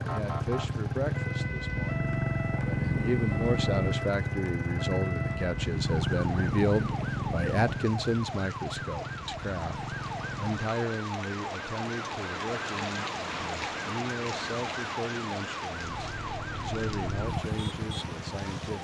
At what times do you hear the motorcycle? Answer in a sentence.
The motorcycle can be heard from 0.0 to 10.8 s and from 15.7 to 18.7 s.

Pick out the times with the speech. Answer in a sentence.
The speech can be heard from 0.0 to 18.7 s.